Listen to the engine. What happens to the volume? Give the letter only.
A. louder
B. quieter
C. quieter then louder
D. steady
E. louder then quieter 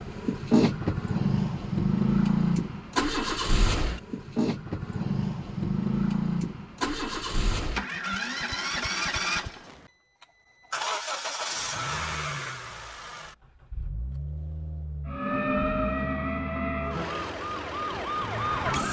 B.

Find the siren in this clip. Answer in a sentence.
You can hear the siren from 15.1 to 18.8 s.